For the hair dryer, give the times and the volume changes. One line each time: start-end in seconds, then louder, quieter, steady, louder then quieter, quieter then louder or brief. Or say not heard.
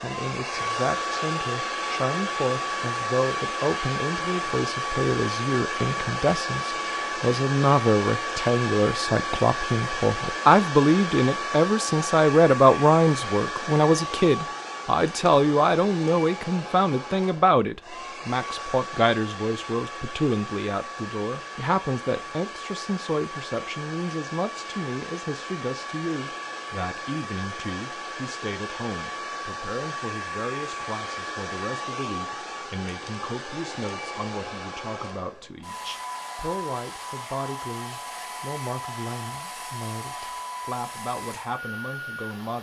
0.0-42.5 quieter.